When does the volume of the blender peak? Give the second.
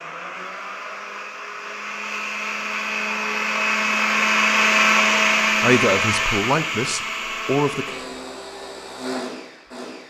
5 s.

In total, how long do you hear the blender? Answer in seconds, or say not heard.
10 s.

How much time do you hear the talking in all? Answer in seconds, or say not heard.
2 s.